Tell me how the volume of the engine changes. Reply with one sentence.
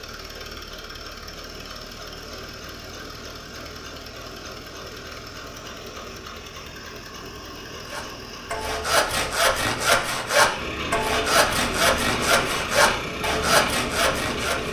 The loudness of the engine goes up.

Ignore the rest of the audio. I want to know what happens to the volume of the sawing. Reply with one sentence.
The volume of the sawing stays about the same.